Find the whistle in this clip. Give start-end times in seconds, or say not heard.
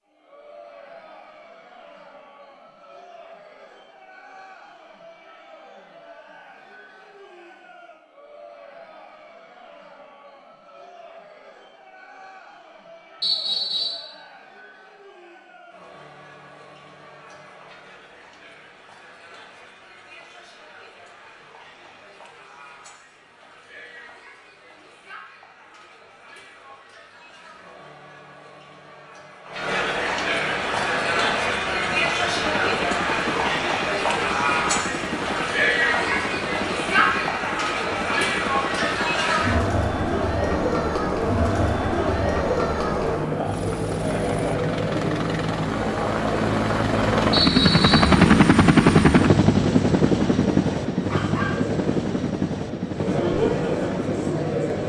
13.2-14.1, 47.3-48.0.